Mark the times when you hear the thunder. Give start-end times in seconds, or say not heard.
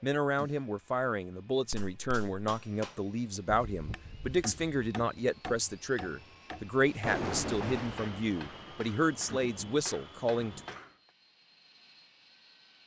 6.8-10.8.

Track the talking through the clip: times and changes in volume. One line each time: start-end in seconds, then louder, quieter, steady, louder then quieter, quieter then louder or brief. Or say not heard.
0.0-10.6 steady.